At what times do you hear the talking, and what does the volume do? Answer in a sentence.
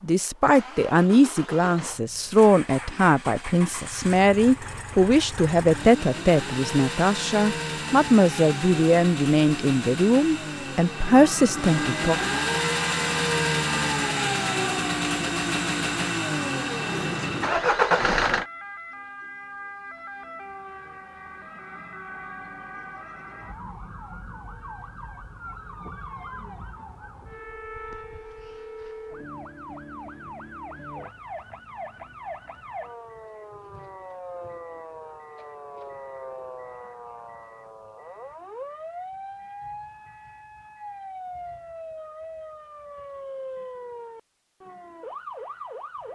The talking can be heard from 0.0 to 12.2 s, at a steady volume.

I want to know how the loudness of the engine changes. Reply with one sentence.
The loudness of the engine goes up.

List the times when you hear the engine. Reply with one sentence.
The engine can be heard from 0.0 to 18.4 s.